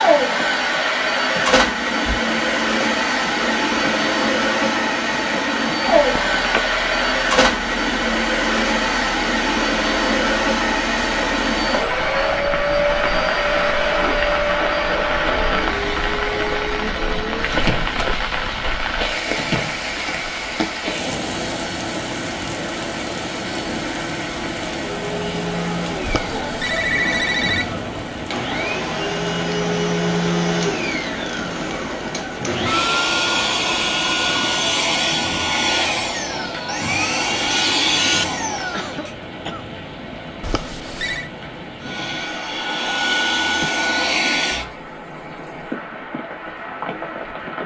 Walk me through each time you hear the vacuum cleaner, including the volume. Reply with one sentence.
The vacuum cleaner can be heard from 0.0 to 39.1 s, getting quieter then louder; and briefly from 41.8 to 44.8 s.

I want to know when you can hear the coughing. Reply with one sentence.
The coughing can be heard from 38.7 to 39.6 s.